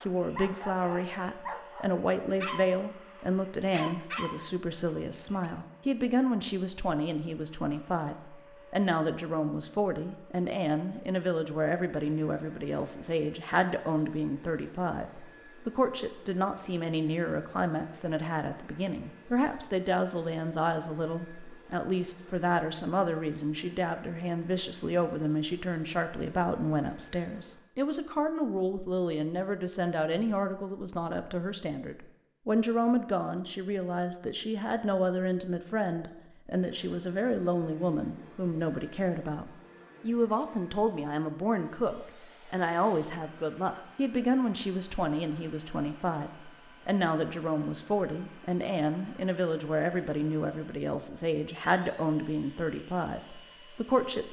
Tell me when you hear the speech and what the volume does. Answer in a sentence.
You can hear the speech from 0.0 to 54.2 s, at a steady volume.